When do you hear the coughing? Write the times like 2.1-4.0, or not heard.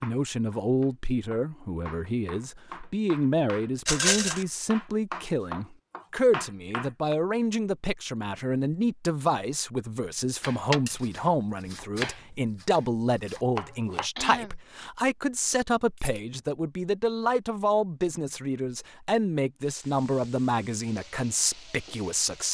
14.2-14.6.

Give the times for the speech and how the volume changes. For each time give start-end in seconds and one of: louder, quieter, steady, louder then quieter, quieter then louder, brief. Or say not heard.
0.0-22.5 steady.